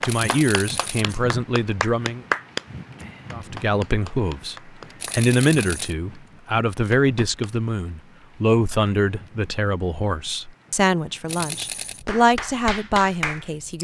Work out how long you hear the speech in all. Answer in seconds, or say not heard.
13 s.